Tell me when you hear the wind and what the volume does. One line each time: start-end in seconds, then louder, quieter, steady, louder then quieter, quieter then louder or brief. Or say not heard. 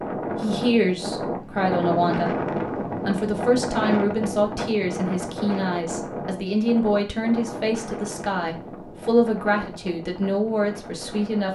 0.0-11.5 quieter.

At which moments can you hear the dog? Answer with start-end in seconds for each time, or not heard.
not heard.